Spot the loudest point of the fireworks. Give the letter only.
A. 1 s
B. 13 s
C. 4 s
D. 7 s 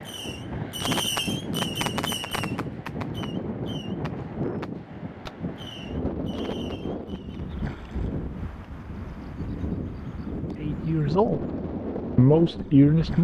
A.